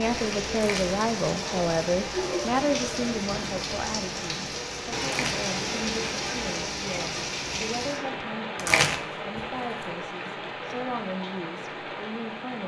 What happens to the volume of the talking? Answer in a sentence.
The loudness of the talking goes down.